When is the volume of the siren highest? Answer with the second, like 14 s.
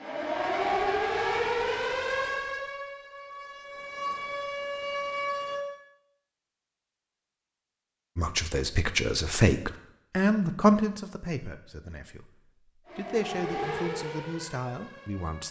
1 s.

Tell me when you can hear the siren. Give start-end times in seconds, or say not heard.
0.0-5.7, 12.8-15.4.